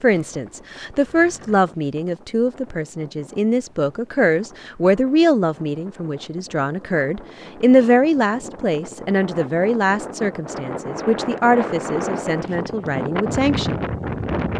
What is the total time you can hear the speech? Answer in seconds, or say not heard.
14 s.